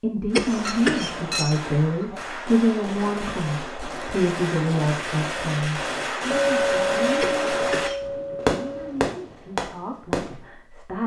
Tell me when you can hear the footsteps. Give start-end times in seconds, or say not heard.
not heard.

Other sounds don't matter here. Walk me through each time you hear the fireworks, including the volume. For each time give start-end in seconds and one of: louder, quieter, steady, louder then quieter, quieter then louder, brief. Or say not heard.
0.3-10.5 louder.